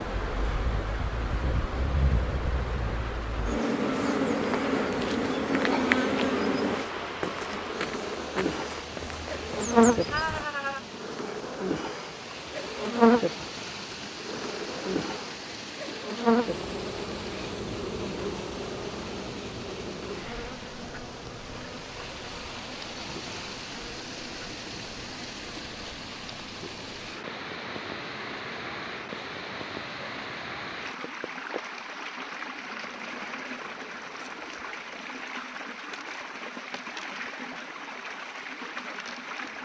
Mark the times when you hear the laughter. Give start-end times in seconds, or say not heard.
10.1-10.8.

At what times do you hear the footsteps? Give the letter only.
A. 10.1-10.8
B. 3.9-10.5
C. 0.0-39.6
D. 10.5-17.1
B.